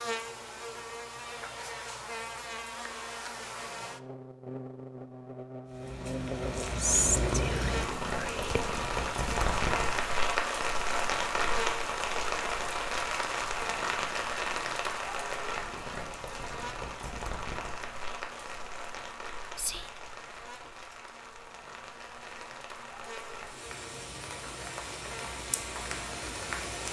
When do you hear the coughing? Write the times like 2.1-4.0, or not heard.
not heard.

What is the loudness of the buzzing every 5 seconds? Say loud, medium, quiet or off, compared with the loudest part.
loud, loud, loud, medium, medium, medium.